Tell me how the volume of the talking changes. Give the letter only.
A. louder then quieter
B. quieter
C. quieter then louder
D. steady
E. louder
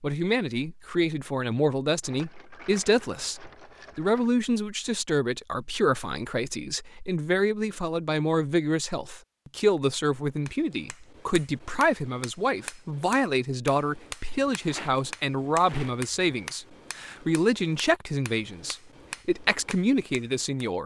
D.